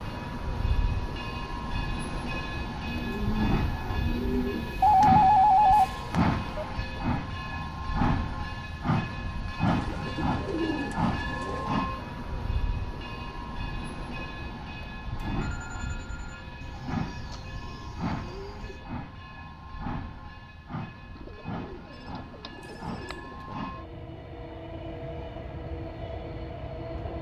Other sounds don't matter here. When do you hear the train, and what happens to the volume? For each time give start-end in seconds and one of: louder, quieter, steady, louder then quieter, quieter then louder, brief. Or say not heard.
0.0-27.1 quieter.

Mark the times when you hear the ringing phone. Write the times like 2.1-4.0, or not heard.
4.8-6.7, 15.3-16.5, 21.9-23.6.